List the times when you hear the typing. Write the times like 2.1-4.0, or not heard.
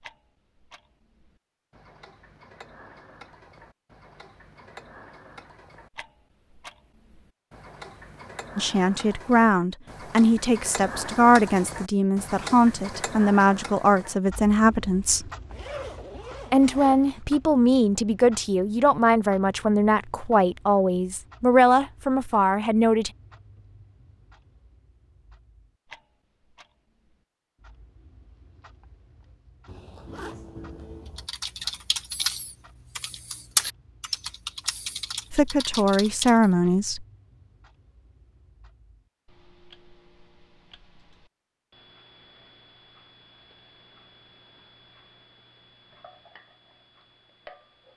31.1-36.5.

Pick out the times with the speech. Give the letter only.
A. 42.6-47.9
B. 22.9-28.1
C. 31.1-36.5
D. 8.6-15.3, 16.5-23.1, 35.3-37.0
D.